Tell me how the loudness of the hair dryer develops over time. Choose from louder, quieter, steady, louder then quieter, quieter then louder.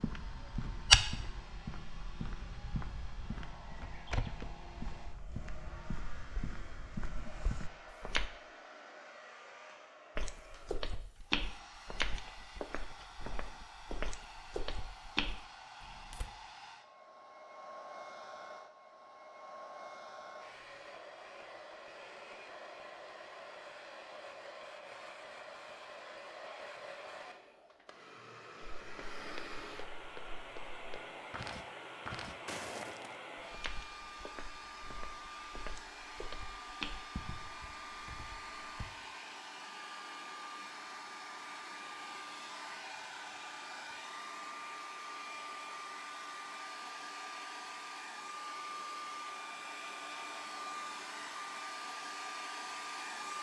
louder.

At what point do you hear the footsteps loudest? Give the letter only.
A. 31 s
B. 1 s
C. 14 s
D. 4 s
B.